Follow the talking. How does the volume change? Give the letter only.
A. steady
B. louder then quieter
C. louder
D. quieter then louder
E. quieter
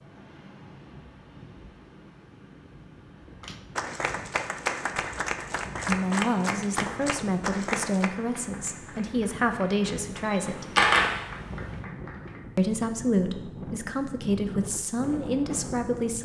A.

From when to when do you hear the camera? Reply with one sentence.
The camera can be heard from 10.2 to 11.1 s.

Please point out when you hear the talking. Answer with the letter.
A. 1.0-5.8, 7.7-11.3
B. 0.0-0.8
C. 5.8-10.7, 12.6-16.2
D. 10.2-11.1
C.